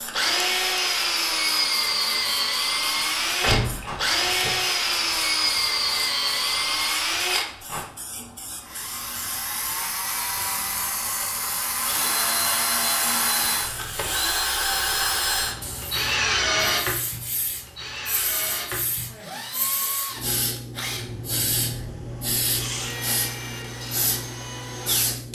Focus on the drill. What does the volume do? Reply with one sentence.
The loudness of the drill goes down.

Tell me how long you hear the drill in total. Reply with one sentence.
The drill can be heard for 25 seconds in total.